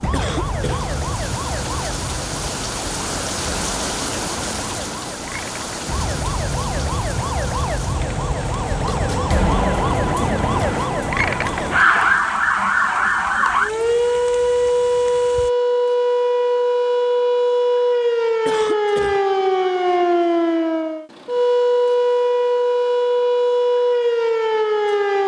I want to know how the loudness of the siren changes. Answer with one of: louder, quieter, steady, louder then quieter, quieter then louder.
louder.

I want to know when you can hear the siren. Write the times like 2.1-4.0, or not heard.
0.0-25.2.